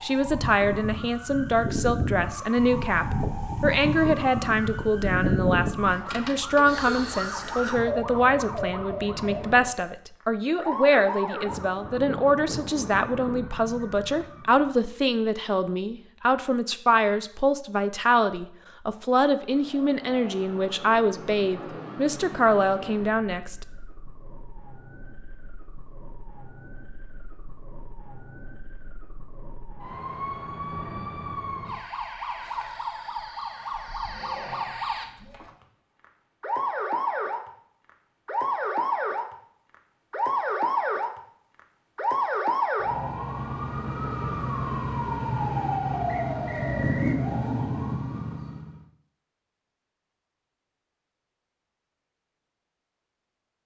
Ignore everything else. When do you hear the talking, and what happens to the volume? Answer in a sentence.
You can hear the talking from 0.0 to 23.6 s, at a steady volume.